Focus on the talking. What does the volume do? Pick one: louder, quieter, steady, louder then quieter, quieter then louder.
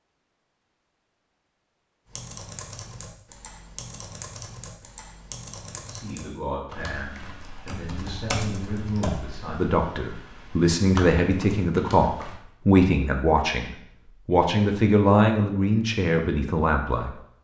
louder.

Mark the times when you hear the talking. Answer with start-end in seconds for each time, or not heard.
5.8-17.2.